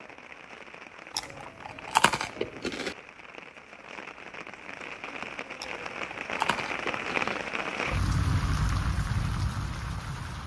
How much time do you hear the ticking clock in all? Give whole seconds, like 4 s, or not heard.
not heard.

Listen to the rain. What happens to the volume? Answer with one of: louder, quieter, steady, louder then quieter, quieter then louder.
louder.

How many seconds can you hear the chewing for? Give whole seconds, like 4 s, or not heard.
4 s.